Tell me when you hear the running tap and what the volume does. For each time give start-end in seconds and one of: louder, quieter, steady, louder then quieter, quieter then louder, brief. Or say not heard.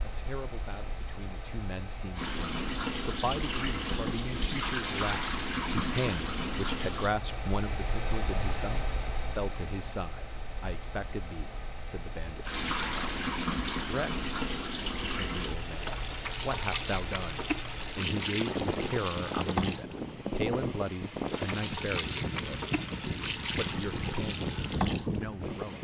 2.1-7.2 steady
12.4-25.7 steady.